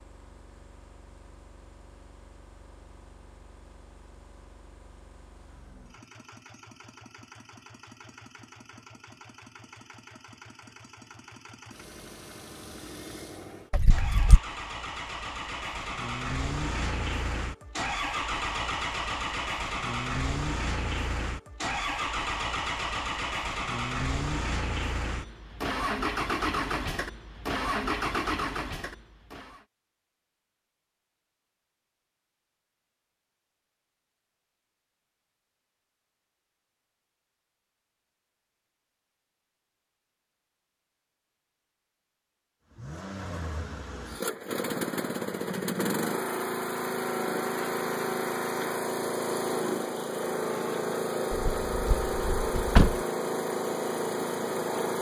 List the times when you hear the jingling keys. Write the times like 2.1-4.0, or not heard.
13.7-14.4, 51.3-53.0.